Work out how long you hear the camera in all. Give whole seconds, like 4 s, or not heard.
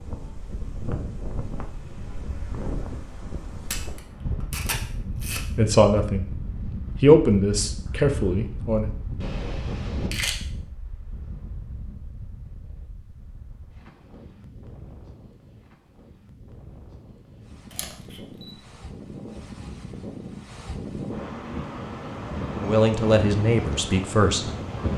4 s.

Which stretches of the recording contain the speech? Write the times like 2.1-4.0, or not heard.
5.0-6.3, 7.0-8.9, 22.6-24.5.